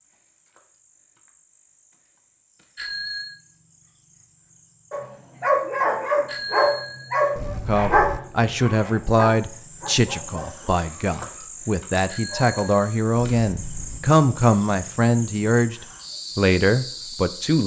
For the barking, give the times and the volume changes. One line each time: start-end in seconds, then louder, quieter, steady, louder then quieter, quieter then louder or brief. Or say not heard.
4.9-12.6 quieter.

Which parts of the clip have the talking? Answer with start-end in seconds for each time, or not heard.
7.7-17.6.